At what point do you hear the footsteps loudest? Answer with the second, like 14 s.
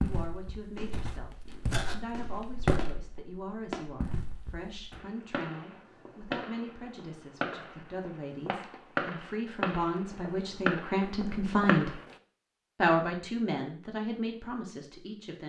3 s.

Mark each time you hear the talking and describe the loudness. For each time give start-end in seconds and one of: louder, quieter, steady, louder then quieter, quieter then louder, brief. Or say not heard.
0.0-11.9 louder
12.8-15.4 brief.